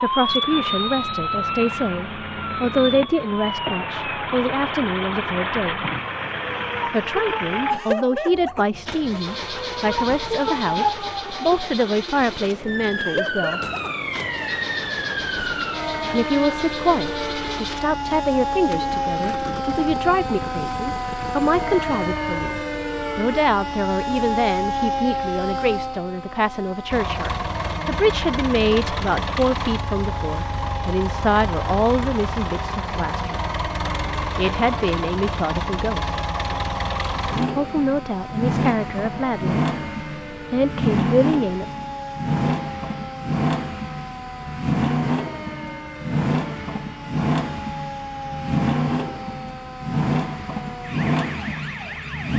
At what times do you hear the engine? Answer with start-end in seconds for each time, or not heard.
0.0-22.6, 26.9-52.3.